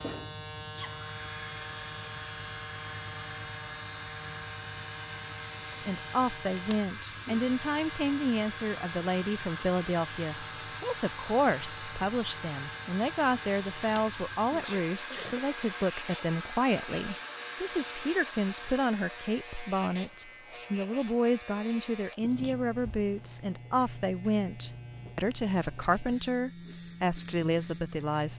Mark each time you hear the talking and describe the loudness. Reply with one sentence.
The talking can be heard from 5.7 to 28.3 s, at a steady volume.